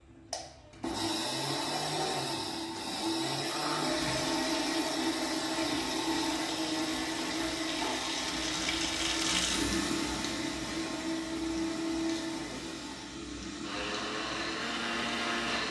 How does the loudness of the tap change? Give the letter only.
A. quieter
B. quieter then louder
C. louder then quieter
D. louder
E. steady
C.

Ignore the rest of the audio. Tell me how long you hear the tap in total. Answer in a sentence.
The tap can be heard for 12 seconds in total.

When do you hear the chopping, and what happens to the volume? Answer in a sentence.
You can't hear the chopping here.